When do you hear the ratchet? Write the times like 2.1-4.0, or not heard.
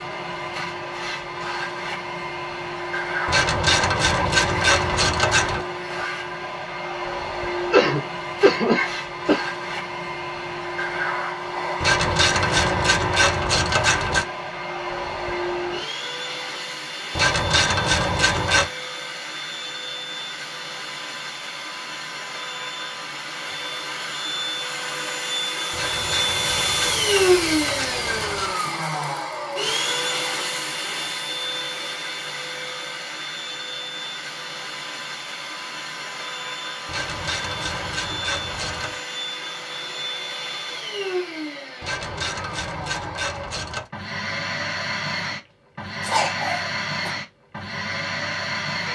3.2-5.7, 11.8-14.2, 17.1-18.7, 25.7-28.6, 36.9-39.0, 41.8-43.9.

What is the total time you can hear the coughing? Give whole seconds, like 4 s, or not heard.
3 s.